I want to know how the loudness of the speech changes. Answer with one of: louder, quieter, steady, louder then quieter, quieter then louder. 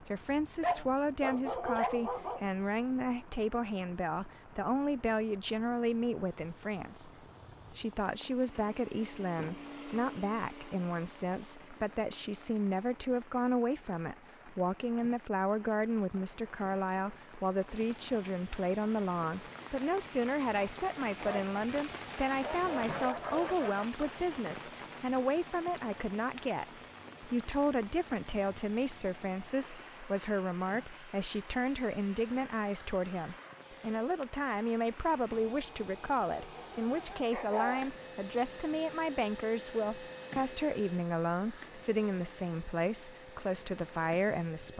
steady.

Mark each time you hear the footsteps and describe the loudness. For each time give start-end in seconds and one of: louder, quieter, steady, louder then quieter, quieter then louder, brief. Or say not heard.
not heard.